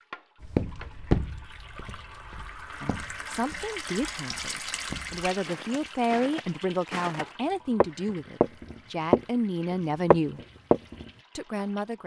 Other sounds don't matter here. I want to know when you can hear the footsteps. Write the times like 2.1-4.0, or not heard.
0.4-9.2, 10.1-11.1.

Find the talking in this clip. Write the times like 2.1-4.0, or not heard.
2.8-10.4, 11.3-12.0.